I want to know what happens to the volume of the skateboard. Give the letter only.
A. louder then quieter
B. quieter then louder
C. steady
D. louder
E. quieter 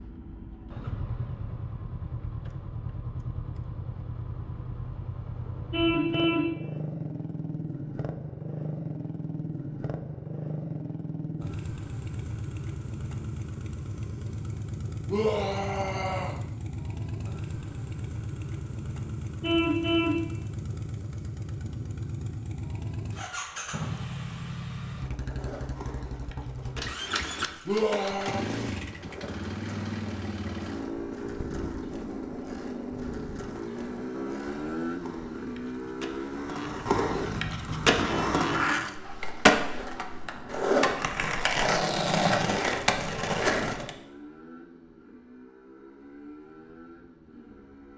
D.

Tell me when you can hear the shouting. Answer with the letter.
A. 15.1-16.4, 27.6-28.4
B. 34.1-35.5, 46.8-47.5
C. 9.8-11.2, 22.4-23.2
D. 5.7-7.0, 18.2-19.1
A.